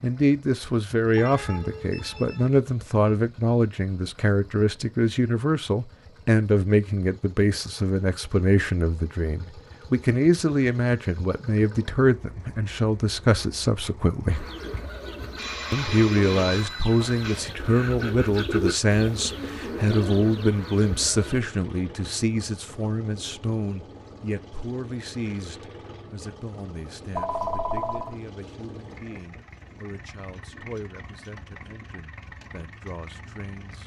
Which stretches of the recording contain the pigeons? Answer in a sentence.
The pigeons can be heard from 14.2 to 21.4 s.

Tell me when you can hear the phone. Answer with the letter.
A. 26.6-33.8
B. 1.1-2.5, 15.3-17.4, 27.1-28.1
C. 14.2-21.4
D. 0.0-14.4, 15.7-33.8
B.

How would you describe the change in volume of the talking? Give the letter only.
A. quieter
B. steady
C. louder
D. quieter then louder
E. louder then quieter
A.